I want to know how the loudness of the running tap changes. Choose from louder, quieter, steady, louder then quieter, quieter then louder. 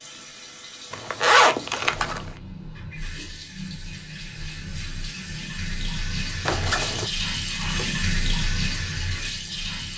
louder.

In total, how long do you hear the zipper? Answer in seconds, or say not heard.
2 s.